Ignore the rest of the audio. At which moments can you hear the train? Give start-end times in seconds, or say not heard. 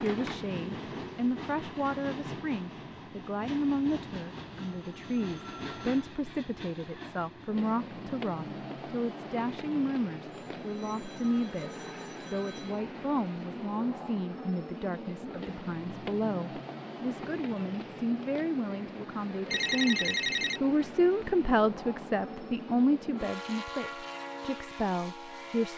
0.0-25.7.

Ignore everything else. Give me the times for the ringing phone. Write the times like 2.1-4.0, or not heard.
4.7-5.9, 10.3-12.8, 19.5-20.6.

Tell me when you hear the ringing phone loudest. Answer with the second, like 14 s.
20 s.